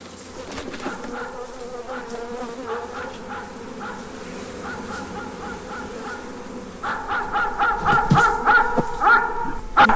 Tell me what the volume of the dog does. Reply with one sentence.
The loudness of the dog goes up.